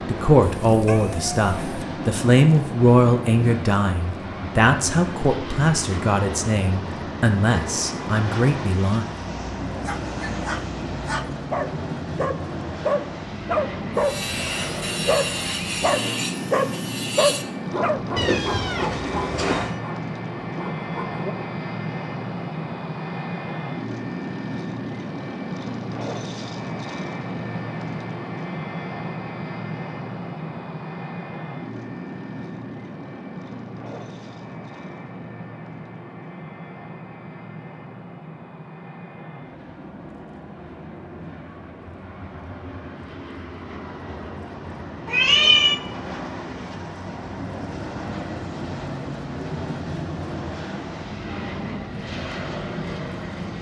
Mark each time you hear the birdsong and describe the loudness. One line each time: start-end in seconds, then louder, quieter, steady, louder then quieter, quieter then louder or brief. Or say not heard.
not heard.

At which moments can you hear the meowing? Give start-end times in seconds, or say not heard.
0.7-1.8, 18.1-19.8, 45.0-45.8.